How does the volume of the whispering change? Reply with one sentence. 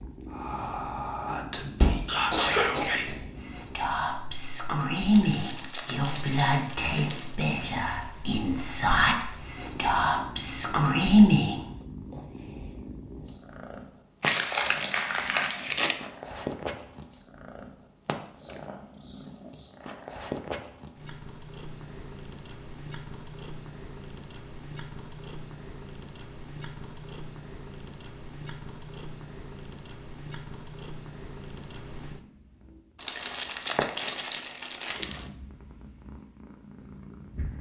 The volume of the whispering goes up.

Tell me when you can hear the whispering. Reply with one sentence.
The whispering can be heard from 0.3 to 11.6 s.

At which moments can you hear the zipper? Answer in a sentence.
The zipper can't be heard in this clip.